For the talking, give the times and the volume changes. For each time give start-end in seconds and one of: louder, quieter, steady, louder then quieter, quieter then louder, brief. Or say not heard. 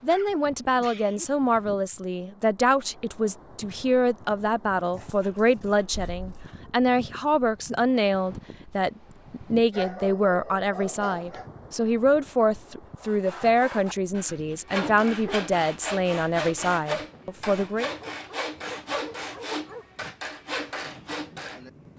0.0-17.9 steady.